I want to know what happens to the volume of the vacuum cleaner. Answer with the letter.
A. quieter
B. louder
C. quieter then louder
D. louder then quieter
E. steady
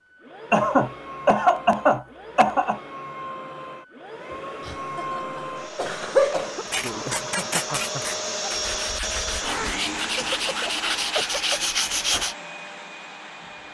D.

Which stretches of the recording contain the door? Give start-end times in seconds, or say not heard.
not heard.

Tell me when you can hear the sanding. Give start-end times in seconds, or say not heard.
6.7-12.3.